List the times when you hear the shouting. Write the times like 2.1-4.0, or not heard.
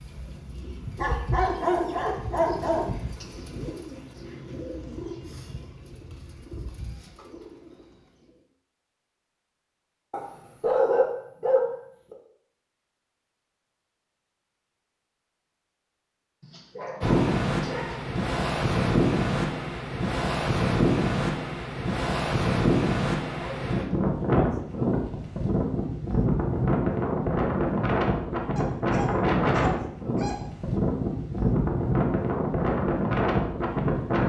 not heard.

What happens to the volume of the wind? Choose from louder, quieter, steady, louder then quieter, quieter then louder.
steady.